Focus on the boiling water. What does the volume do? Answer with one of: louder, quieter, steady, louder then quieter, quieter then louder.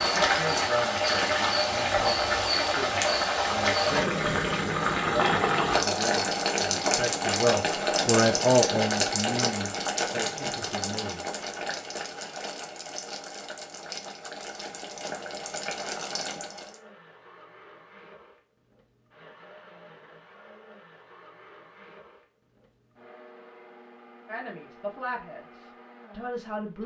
quieter.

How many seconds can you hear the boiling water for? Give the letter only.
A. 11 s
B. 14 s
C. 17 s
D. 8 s
C.